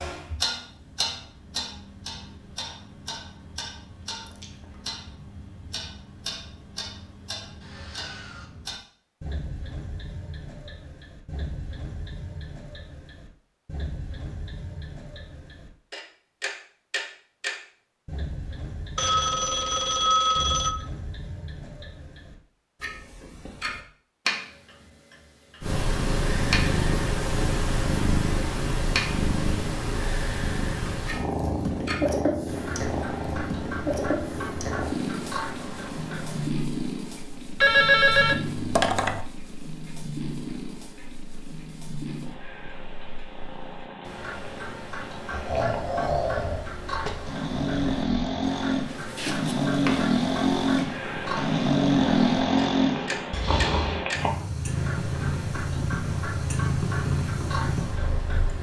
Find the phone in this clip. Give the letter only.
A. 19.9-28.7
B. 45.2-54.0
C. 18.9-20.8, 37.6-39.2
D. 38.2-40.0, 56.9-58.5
C.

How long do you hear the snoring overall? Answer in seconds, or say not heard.
9 s.